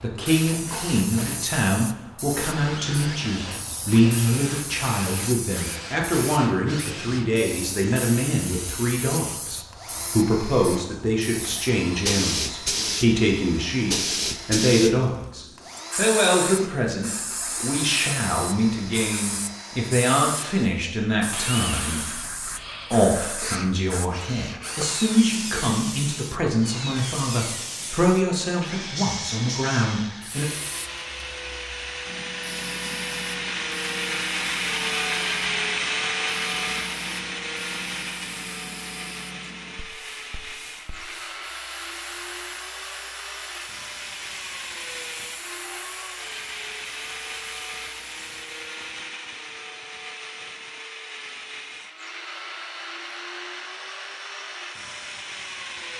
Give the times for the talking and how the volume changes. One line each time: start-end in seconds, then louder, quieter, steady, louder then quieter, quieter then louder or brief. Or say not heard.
0.0-30.4 steady.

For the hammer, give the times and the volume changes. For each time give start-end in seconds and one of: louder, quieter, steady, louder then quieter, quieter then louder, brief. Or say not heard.
not heard.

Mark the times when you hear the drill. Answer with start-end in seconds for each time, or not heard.
0.1-55.9.